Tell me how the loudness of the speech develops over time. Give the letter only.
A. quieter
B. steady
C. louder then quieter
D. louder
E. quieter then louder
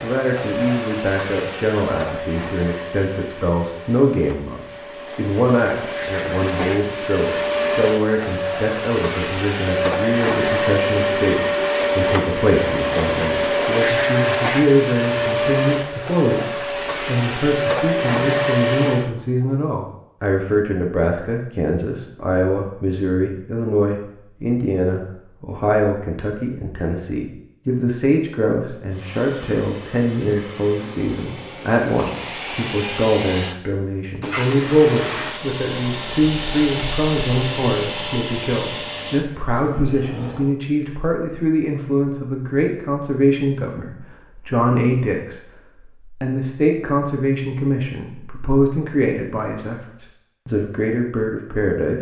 B.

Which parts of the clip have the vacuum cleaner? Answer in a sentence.
You can hear the vacuum cleaner from 0.0 to 19.1 s and from 28.9 to 40.5 s.